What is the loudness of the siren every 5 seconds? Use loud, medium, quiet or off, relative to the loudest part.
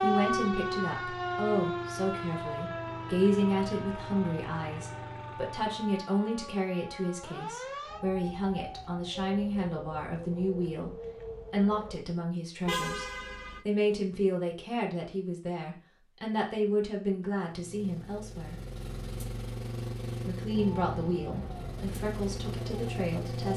loud, medium, medium, off, medium.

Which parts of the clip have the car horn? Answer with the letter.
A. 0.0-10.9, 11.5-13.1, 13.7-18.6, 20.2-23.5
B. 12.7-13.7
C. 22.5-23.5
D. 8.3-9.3
B.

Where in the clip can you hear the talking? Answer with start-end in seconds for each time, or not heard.
0.0-10.9, 11.5-13.1, 13.7-18.6, 20.2-23.5.